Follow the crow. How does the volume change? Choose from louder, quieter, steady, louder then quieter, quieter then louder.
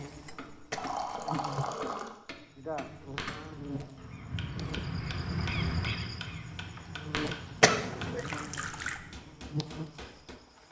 louder then quieter.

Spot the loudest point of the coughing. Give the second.
8 s.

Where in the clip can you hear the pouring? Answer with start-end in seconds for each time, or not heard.
0.8-2.2, 8.2-9.0.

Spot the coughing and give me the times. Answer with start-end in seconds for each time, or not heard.
0.7-1.3, 7.6-8.2.